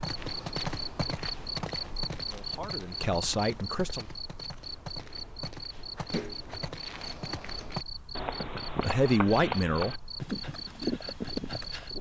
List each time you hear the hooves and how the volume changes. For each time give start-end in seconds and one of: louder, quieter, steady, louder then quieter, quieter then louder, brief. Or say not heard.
0.0-11.9 quieter then louder.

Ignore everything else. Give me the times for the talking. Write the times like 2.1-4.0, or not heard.
2.2-4.0, 8.7-10.1.